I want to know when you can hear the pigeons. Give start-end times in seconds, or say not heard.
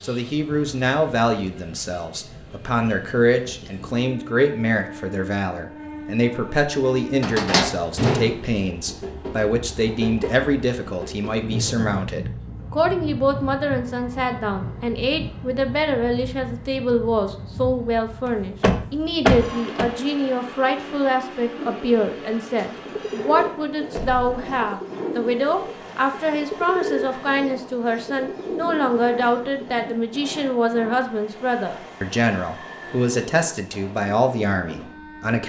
21.6-29.7.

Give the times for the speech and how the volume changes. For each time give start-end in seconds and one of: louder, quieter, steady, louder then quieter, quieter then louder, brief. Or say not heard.
0.0-35.4 steady.